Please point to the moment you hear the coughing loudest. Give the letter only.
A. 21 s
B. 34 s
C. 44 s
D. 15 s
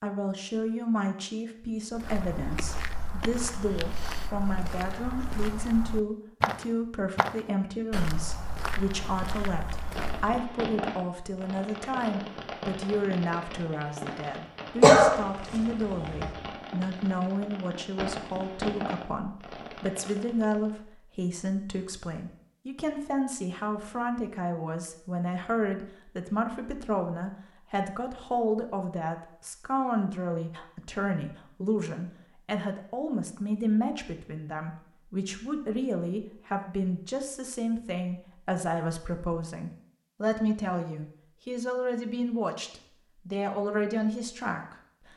D.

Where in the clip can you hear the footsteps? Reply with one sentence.
You can hear the footsteps from 1.9 to 10.4 s.